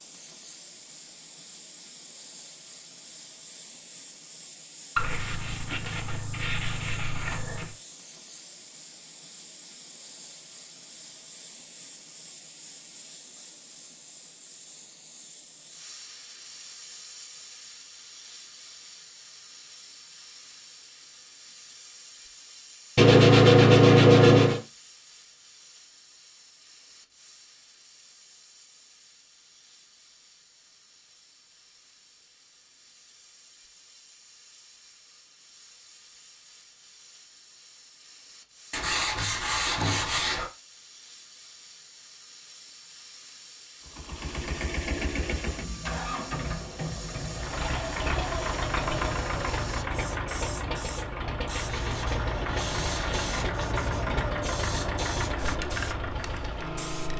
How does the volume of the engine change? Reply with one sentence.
The loudness of the engine stays about the same.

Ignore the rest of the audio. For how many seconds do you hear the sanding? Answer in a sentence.
You can hear the sanding for 8 seconds altogether.